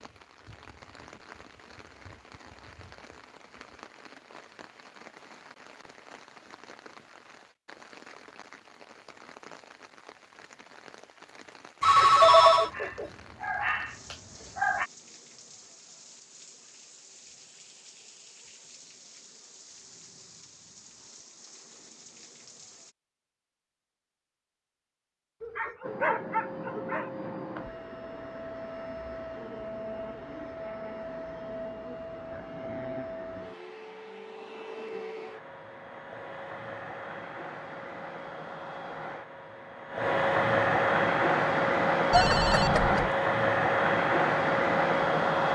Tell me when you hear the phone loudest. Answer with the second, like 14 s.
12 s.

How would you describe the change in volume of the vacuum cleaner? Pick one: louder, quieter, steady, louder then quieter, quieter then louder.
louder.